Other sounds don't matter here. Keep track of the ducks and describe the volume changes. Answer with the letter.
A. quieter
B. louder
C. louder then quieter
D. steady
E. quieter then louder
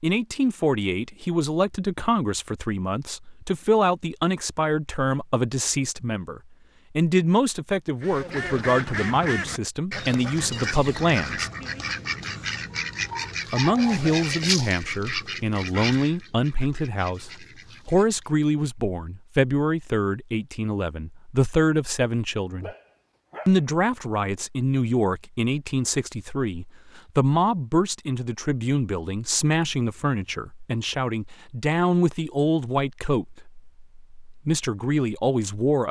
A.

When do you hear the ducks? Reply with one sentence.
The ducks can be heard from 8.0 to 18.3 s.